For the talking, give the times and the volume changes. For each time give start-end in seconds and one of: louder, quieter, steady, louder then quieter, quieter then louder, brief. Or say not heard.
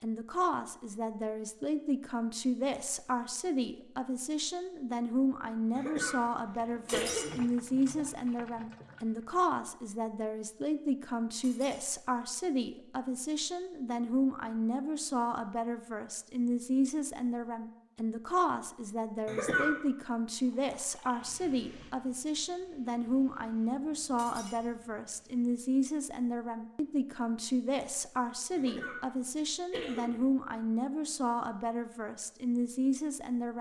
0.0-33.5 steady.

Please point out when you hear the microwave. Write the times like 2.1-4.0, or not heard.
not heard.